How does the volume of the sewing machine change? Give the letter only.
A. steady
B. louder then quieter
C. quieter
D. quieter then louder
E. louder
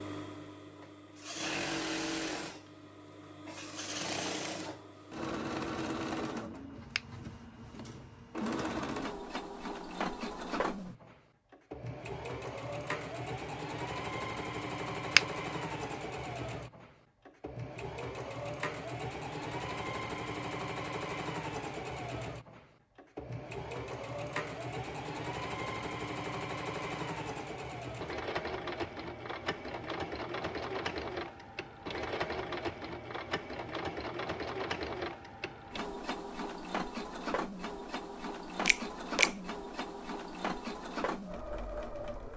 A.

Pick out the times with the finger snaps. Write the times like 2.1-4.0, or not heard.
38.6-39.3.